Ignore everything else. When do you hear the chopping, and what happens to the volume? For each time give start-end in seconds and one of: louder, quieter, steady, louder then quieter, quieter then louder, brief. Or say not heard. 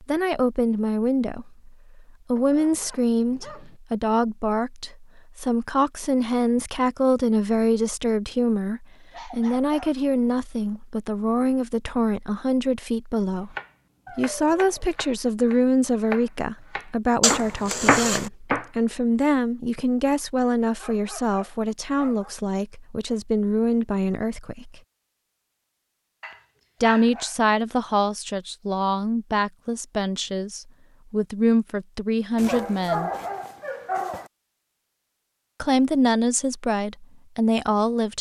13.5-18.7 louder.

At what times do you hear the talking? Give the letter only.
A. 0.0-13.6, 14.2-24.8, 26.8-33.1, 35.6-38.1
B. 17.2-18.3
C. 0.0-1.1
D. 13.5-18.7
A.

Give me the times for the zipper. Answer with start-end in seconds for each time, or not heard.
17.2-18.3.